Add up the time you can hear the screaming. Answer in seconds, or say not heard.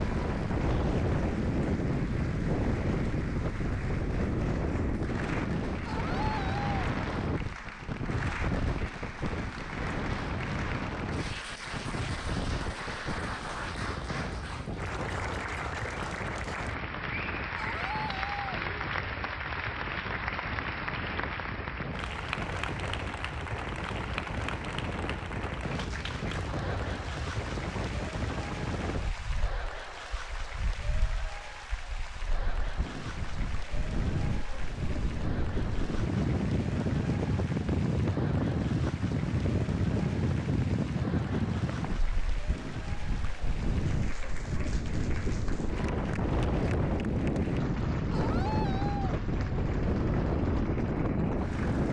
3 s.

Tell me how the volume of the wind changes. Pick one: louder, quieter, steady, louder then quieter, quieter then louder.
quieter then louder.